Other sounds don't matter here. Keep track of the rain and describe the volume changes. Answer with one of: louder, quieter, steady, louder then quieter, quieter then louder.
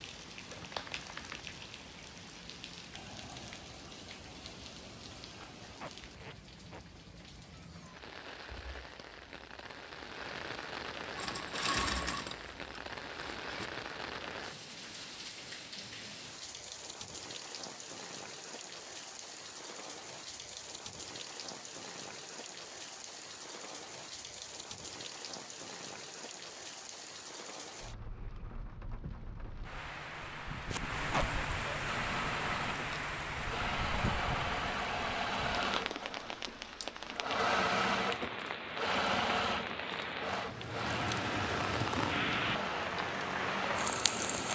louder.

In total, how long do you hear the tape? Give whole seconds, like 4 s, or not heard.
2 s.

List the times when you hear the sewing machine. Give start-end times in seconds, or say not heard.
11.2-13.7, 31.9-44.4.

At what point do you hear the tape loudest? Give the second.
31 s.